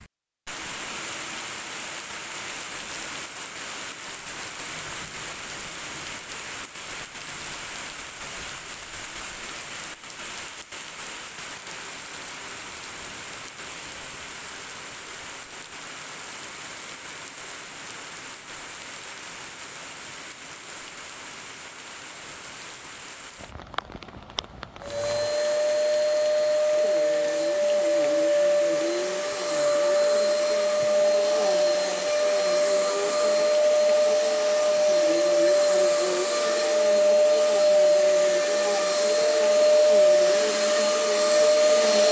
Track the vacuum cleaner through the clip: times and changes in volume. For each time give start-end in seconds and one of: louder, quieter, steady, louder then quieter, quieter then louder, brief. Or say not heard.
24.8-42.0 steady.